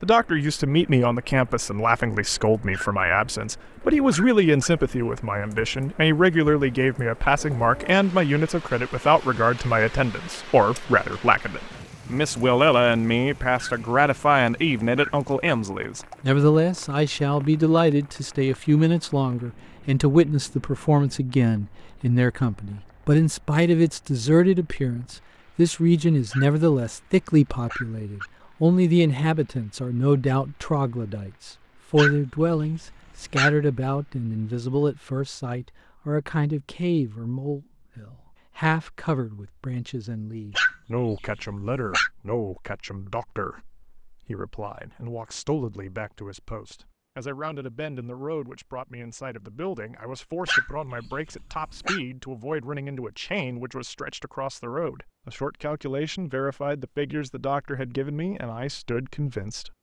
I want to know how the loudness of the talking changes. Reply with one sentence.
The loudness of the talking goes down.